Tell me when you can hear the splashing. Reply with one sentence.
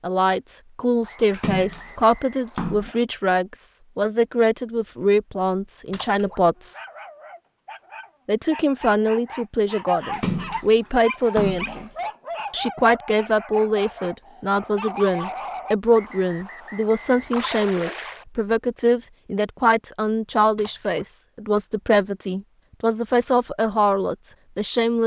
You can hear the splashing from 1.3 to 3.0 s, from 5.9 to 6.4 s, from 10.1 to 11.9 s, from 17.3 to 18.2 s and from 20.6 to 21.1 s.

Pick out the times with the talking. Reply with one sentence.
The talking can be heard from 0.0 to 6.8 s, from 8.2 to 11.9 s and from 12.5 to 25.0 s.